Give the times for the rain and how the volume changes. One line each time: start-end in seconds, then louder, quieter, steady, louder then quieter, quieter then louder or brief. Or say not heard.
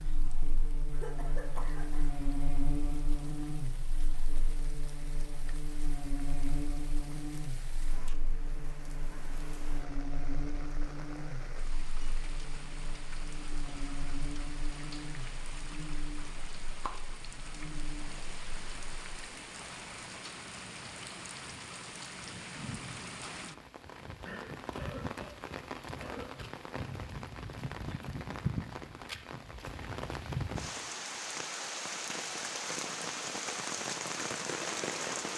0.0-35.3 louder.